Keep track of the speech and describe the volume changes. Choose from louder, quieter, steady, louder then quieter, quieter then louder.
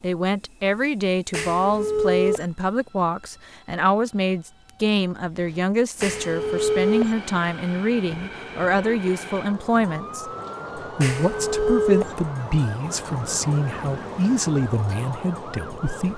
steady.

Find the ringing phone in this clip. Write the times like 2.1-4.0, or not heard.
1.3-2.5, 6.0-7.2, 11.0-12.2.